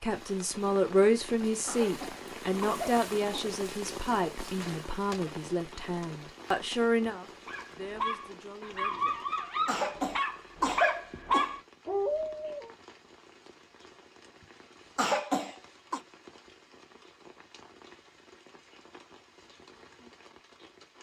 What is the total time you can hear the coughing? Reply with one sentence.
The coughing can be heard for 5 seconds in total.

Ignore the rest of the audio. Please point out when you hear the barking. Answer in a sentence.
The barking can be heard from 7.5 to 12.7 s.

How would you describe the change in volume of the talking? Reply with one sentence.
The volume of the talking goes down.